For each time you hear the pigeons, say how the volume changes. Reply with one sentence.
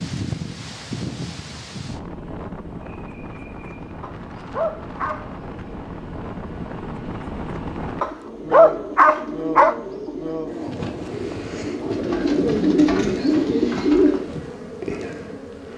The pigeons can be heard from 7.9 to 14.2 s, getting louder.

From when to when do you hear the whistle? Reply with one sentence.
The whistle can't be heard in this clip.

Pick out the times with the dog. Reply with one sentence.
The dog can be heard from 4.0 to 5.2 s and from 8.0 to 9.8 s.